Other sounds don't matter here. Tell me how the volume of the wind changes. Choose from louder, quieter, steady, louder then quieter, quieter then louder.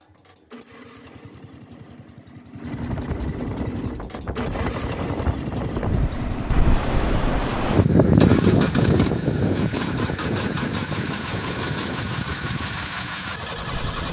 louder then quieter.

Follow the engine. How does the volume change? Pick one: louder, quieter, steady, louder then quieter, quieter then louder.
louder.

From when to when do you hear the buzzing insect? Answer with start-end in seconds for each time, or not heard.
not heard.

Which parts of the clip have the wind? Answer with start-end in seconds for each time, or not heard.
2.6-14.0.